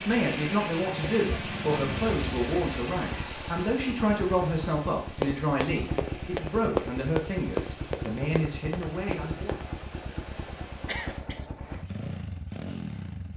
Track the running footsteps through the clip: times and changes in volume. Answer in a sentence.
You can hear the running footsteps from 5.2 to 9.7 s, getting louder then quieter.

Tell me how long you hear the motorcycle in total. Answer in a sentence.
The motorcycle can be heard for 13 seconds in total.